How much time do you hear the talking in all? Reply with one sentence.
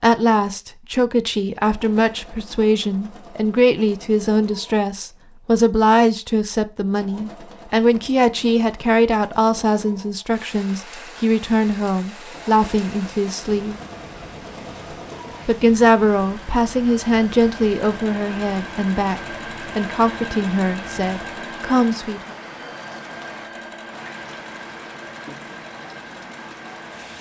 The talking can be heard for 21 seconds in total.